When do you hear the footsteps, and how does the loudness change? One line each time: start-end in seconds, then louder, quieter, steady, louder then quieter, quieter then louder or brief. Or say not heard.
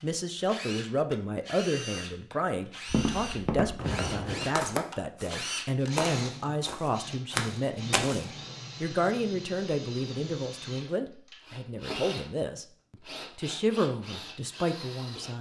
2.9-8.2 quieter then louder.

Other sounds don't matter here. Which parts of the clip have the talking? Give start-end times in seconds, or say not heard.
0.0-15.3.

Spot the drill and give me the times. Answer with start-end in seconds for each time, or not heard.
0.0-15.3.